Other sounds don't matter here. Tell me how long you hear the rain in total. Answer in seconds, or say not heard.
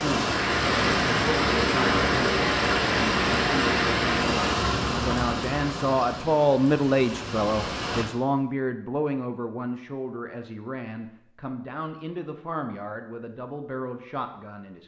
8 s.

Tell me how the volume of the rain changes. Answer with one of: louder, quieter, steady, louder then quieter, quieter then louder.
quieter.